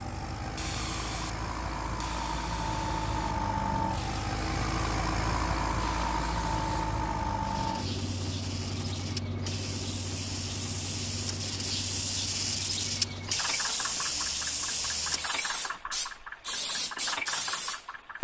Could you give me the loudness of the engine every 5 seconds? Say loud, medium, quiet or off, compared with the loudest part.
loud, loud, medium, medium.